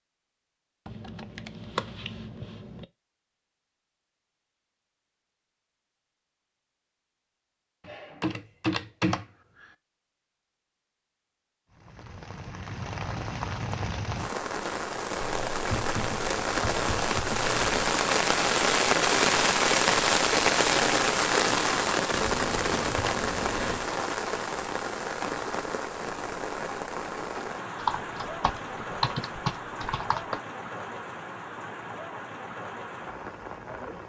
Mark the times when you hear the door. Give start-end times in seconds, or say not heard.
not heard.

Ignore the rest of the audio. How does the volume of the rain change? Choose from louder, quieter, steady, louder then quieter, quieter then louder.
louder then quieter.